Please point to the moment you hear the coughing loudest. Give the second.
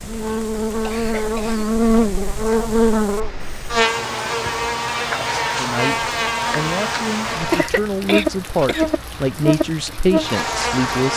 8 s.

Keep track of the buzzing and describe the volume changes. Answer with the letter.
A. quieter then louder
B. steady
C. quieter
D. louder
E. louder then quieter
B.